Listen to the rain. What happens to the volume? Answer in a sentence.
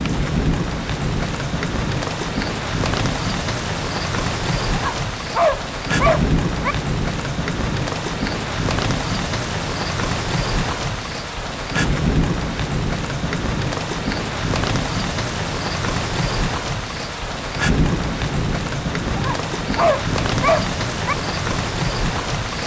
The volume of the rain stays about the same.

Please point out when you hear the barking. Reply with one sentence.
You can hear the barking from 4.7 to 6.8 s and from 19.1 to 21.1 s.